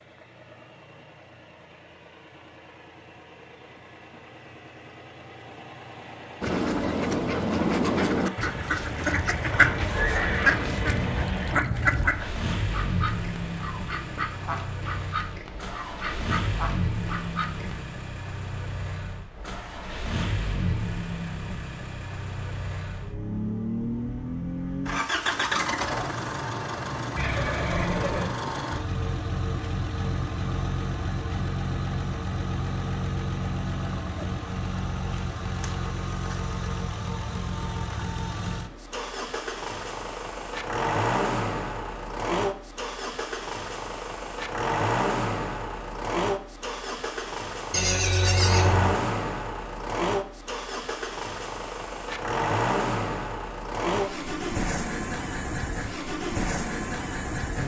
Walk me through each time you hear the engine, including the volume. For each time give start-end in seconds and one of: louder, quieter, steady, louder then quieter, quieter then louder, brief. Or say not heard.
0.0-57.6 louder.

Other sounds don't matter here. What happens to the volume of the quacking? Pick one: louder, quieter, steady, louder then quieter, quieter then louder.
quieter.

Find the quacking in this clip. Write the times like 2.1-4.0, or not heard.
6.4-17.9.